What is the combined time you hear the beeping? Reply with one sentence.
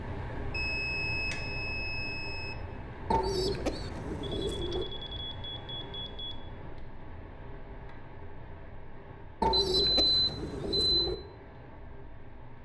You can hear the beeping for 6 seconds altogether.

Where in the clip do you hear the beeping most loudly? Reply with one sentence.
The loudest moment of the beeping is at 10 seconds.